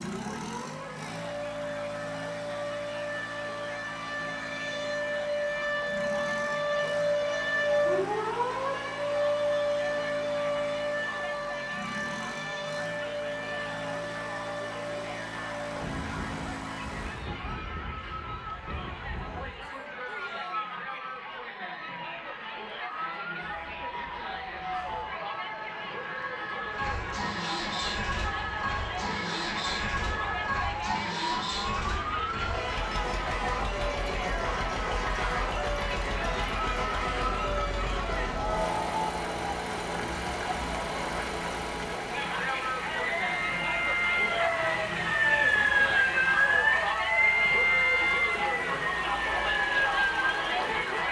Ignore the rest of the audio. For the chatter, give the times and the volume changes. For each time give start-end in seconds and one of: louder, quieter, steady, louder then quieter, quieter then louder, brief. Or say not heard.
0.0-51.0 louder.